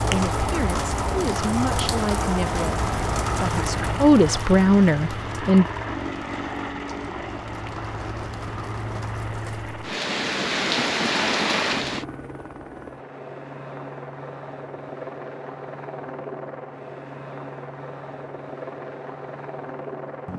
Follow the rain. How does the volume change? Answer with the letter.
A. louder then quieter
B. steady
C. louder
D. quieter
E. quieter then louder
E.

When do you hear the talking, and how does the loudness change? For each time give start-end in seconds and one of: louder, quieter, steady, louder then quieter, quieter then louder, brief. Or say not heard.
0.0-5.7 louder.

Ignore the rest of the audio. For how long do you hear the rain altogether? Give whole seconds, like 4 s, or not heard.
12 s.